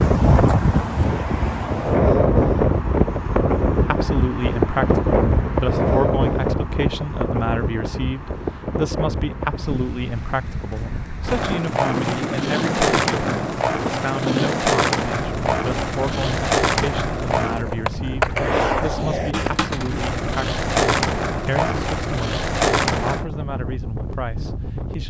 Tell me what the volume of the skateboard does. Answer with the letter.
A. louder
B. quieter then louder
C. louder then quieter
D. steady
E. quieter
D.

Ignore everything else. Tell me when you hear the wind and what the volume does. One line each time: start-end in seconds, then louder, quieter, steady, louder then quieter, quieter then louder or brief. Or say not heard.
0.0-25.0 quieter.